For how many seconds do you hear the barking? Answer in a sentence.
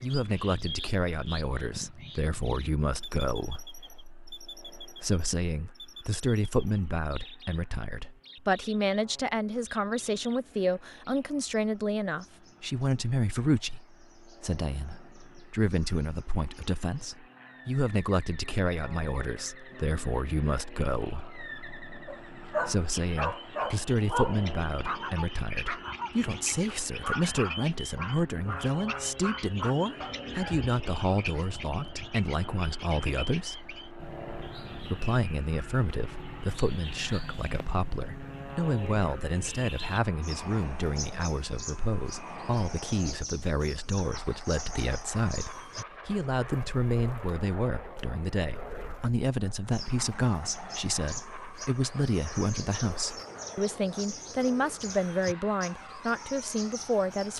The barking can be heard for 9 seconds in total.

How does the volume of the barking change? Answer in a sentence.
The volume of the barking goes down.